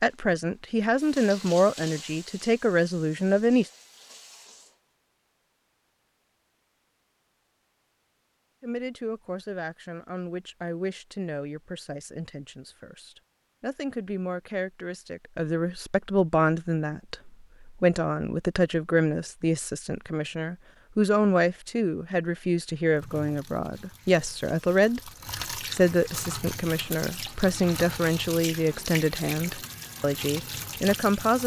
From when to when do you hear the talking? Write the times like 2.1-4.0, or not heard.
0.0-3.6, 8.6-31.4.